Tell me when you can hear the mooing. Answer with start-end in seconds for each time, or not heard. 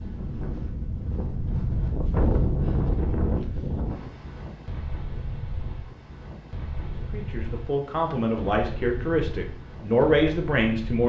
not heard.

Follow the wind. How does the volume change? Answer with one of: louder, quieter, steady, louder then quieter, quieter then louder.
quieter.